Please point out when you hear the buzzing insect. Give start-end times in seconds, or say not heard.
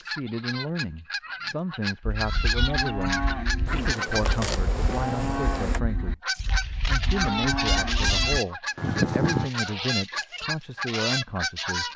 3.6-5.8.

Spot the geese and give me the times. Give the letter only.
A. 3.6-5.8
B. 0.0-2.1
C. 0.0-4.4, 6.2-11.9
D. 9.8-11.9
C.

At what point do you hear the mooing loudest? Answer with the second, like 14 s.
9 s.